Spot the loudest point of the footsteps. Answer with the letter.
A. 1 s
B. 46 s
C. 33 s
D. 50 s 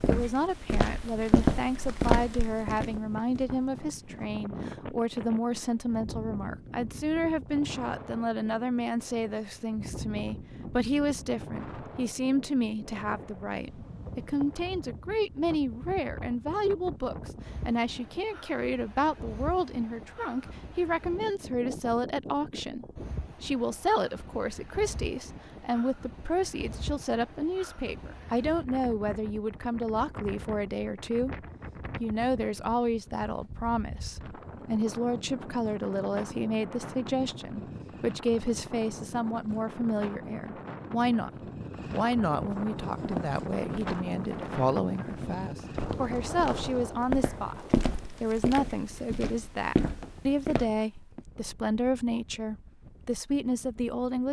A.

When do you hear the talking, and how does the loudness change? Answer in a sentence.
The talking can be heard from 0.1 to 31.4 s, at a steady volume; and from 32.0 to 54.2 s, at a steady volume.